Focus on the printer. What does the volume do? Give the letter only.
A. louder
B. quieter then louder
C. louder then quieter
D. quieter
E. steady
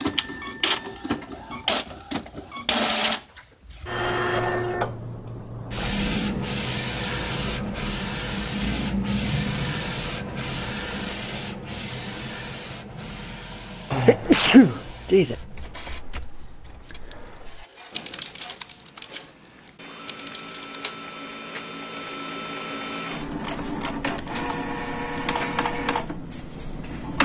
B.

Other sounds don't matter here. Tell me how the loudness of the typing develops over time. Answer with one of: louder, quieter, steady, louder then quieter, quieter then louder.
louder then quieter.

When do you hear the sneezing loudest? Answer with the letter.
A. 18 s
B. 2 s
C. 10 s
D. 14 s
D.